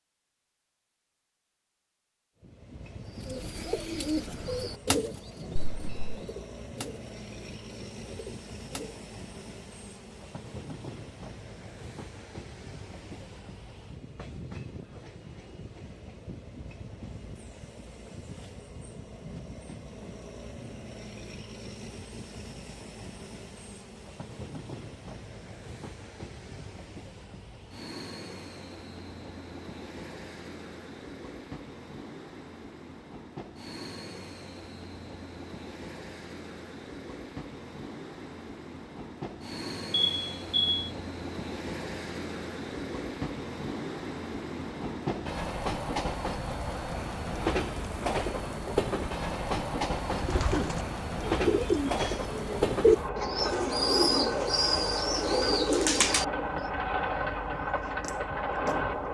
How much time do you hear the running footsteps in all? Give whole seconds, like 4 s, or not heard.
not heard.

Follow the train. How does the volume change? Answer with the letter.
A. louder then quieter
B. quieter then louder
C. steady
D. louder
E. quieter
D.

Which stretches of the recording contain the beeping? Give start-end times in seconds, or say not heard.
5.5-6.2, 39.9-40.9.